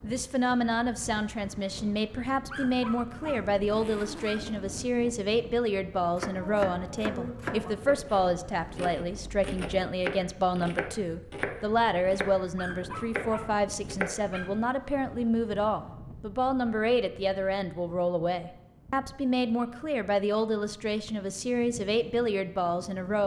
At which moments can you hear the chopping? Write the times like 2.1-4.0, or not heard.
6.0-14.3.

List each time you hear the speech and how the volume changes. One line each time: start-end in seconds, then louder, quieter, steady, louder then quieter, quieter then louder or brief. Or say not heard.
0.0-23.2 steady.